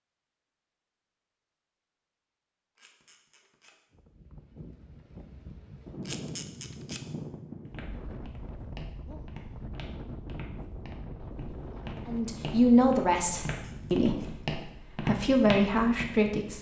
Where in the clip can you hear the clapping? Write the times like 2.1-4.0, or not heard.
not heard.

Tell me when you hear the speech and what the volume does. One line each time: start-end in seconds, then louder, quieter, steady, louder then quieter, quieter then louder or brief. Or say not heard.
12.1-16.5 quieter then louder.